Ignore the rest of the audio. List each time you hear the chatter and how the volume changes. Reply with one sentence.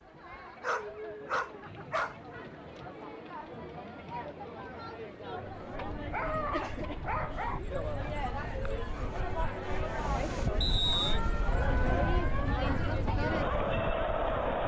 The chatter can be heard from 0.0 to 14.6 s, getting louder.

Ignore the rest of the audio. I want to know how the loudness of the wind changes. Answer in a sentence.
The loudness of the wind goes up.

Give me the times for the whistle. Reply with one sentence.
You can hear the whistle from 1.6 to 2.5 s and from 10.6 to 11.2 s.